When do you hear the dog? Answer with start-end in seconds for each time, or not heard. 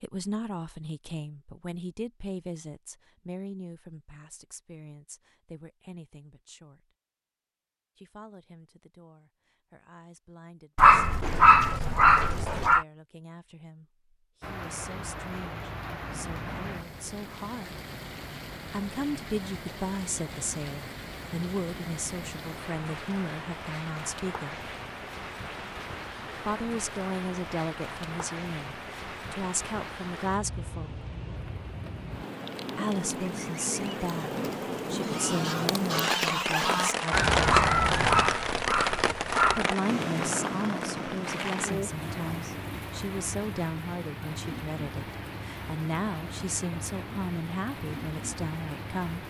10.8-12.8, 37.5-39.6.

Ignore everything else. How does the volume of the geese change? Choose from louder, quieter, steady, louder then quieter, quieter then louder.
louder.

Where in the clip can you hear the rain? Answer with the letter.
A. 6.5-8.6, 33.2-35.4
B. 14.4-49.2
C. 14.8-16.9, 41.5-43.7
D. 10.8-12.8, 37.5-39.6
B.